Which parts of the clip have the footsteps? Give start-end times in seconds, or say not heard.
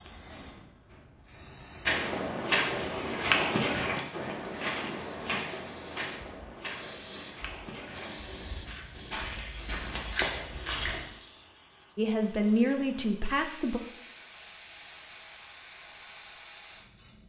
1.9-11.1.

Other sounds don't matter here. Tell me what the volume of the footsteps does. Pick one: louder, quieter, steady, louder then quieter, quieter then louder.
quieter then louder.